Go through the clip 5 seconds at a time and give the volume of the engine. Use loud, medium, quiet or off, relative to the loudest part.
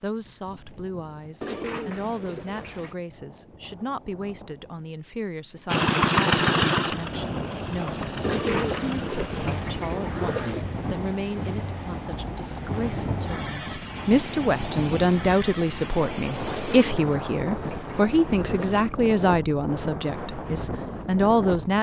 off, loud, quiet, quiet, off.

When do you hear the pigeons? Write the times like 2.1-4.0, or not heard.
1.4-3.0, 8.2-10.7, 16.4-18.9.